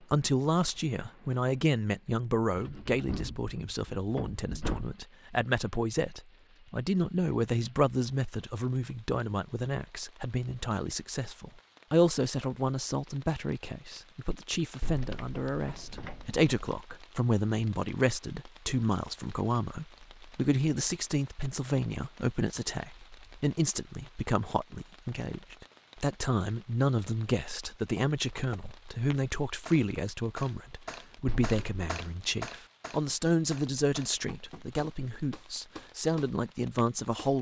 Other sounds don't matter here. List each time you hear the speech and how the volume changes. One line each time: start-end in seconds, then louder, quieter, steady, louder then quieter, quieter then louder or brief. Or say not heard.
0.0-37.3 steady.